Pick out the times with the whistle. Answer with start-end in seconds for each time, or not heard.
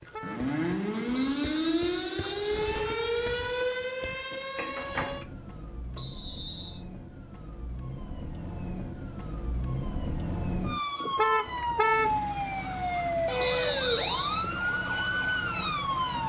1.1-2.9, 6.0-6.8, 13.3-14.4.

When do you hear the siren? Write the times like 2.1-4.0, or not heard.
0.0-16.2.